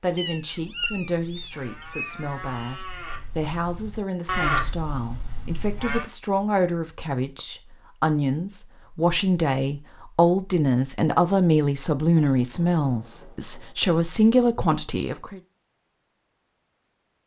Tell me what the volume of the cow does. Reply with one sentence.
The loudness of the cow goes up, then down.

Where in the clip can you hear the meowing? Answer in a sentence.
The meowing can be heard from 0.1 to 2.4 s.